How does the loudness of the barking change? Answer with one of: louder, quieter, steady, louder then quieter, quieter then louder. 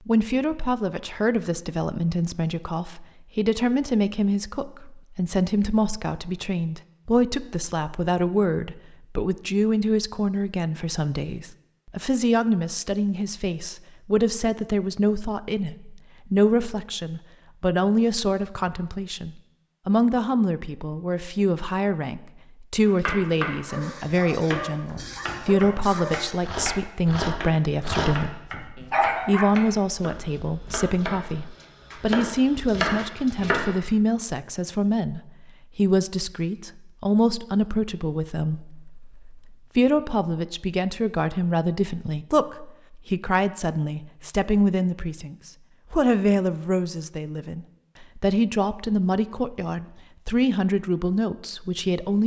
louder.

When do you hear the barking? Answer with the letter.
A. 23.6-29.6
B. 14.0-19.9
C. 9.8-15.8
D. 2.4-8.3
A.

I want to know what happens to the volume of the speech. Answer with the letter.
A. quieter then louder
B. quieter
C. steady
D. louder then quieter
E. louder
C.